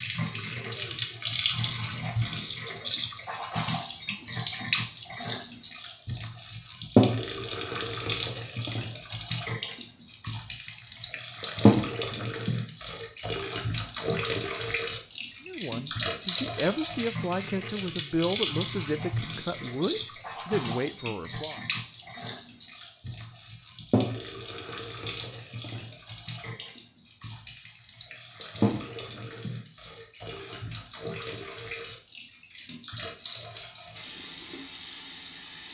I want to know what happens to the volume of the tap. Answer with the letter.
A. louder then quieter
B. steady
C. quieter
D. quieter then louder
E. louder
C.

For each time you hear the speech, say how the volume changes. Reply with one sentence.
You can hear the speech from 15.4 to 21.6 s, at a steady volume.